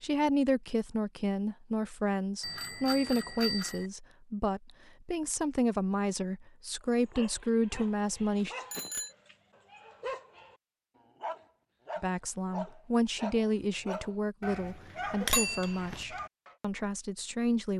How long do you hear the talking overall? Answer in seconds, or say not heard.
14 s.